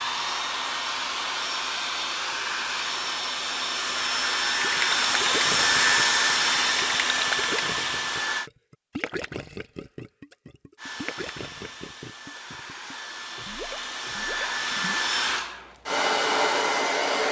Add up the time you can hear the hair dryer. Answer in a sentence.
The hair dryer can be heard for 15 seconds in total.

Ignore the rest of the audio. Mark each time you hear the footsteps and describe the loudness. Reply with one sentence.
You can't hear the footsteps here.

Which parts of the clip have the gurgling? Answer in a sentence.
The gurgling can be heard from 4.6 to 15.1 s.